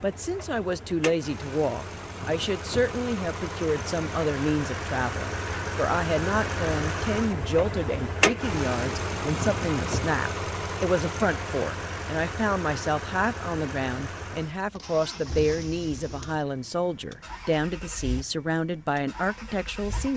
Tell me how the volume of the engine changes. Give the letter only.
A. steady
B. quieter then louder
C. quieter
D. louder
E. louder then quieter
E.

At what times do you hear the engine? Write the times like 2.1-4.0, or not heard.
0.0-20.1.